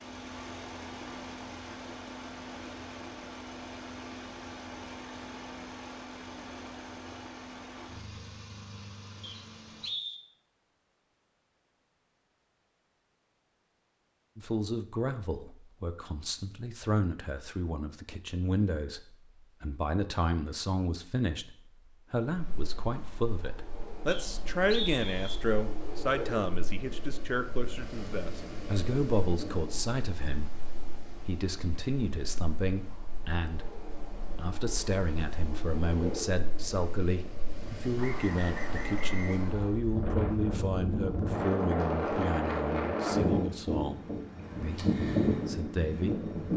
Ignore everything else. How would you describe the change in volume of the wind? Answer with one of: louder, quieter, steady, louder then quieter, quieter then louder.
louder.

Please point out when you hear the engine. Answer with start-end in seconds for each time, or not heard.
0.0-9.9.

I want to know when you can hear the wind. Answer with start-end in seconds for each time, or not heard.
22.2-46.5.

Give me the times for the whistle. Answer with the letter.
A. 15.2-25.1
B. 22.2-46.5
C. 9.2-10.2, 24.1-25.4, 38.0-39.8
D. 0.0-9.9
C.